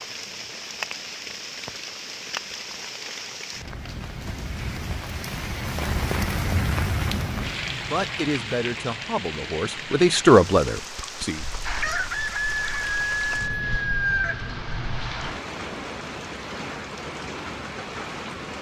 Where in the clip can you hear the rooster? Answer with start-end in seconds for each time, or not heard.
11.3-15.4.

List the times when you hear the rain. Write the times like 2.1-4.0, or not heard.
0.0-18.5.